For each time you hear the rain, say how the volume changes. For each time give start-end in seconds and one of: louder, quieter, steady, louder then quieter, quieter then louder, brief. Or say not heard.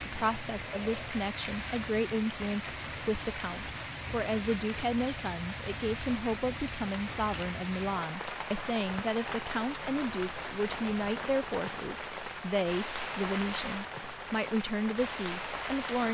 0.0-16.0 steady.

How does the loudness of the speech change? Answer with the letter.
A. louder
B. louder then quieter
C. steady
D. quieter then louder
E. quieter
C.